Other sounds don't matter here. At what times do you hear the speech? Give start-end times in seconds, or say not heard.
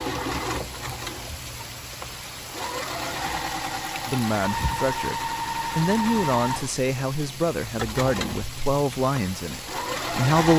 4.0-10.5.